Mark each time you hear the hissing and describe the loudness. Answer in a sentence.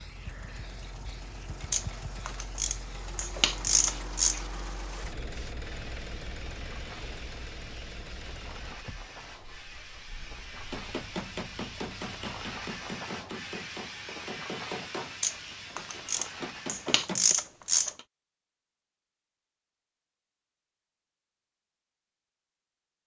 The hissing can be heard from 0.0 to 17.1 s, getting louder.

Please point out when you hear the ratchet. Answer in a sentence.
You can hear the ratchet from 1.7 to 4.4 s and from 15.2 to 18.0 s.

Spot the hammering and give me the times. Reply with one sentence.
You can hear the hammering from 10.7 to 17.4 s.